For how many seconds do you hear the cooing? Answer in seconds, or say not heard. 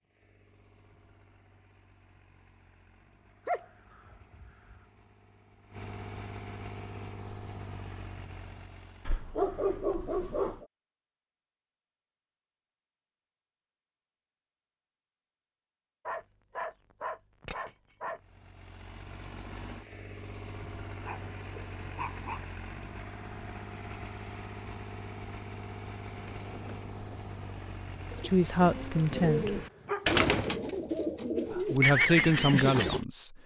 7 s.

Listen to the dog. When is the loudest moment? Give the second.
10 s.